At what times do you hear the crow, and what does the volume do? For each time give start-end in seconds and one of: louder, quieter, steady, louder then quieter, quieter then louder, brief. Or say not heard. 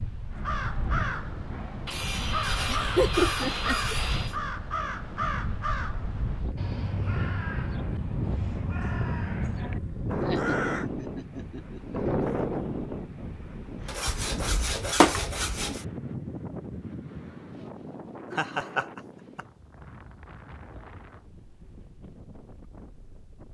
0.3-10.9 steady.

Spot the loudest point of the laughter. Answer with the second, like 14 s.
3 s.